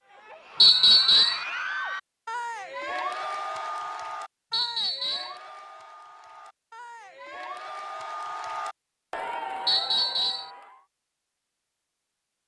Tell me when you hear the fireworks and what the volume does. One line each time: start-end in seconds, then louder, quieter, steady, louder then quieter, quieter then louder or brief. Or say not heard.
not heard.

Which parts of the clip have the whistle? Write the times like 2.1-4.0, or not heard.
0.6-1.4, 4.5-5.3, 9.7-10.5.